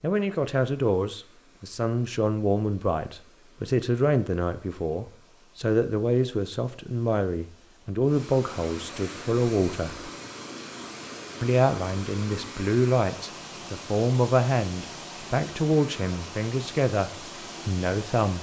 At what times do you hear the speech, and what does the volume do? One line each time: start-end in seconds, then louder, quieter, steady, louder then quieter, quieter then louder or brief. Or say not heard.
0.0-10.1 steady
11.4-18.3 steady.